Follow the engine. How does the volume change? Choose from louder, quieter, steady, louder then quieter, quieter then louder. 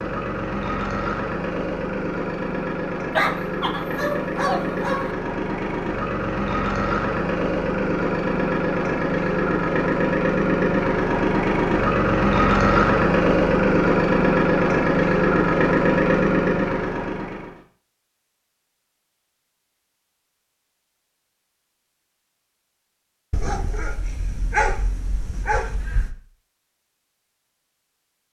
louder.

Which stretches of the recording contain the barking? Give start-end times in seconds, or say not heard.
3.1-5.1, 23.3-26.1.